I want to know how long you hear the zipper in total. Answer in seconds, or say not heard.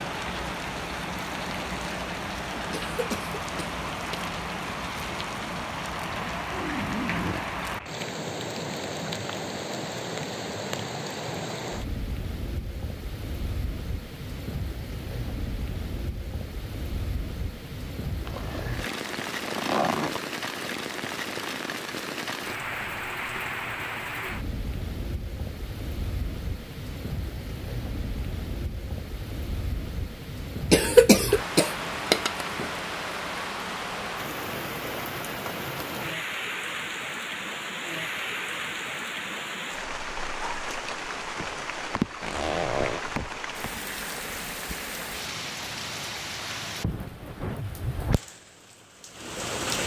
4 s.